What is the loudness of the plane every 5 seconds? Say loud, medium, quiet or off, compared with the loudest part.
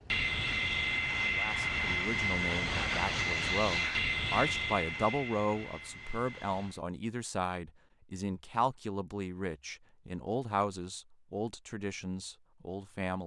loud, quiet, off.